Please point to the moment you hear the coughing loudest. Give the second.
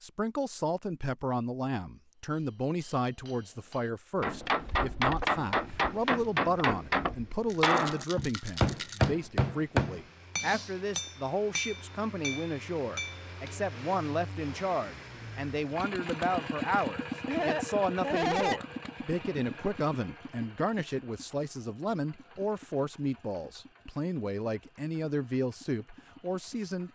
18 s.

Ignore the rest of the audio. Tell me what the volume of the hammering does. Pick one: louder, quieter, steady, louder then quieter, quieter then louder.
louder then quieter.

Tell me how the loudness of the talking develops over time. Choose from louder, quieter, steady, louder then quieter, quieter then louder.
steady.